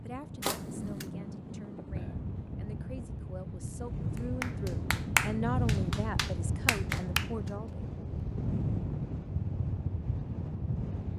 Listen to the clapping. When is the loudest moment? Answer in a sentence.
The volume of the clapping peaks at 5 seconds.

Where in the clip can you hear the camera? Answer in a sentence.
The camera can be heard from 0.4 to 1.1 s and from 6.8 to 7.6 s.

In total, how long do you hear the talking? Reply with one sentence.
You can hear the talking for 8 seconds altogether.